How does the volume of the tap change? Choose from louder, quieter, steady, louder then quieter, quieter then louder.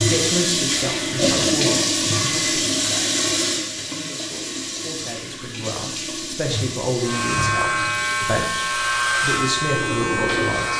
quieter.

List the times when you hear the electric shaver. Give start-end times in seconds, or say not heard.
7.0-10.7.